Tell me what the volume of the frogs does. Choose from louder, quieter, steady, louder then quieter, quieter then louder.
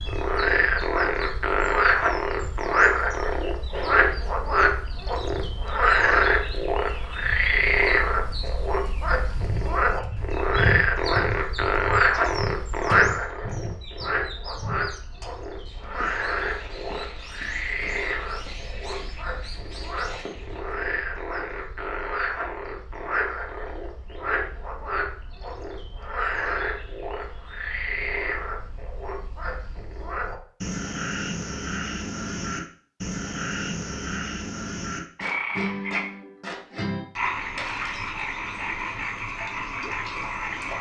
quieter.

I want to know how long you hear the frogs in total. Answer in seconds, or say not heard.
41 s.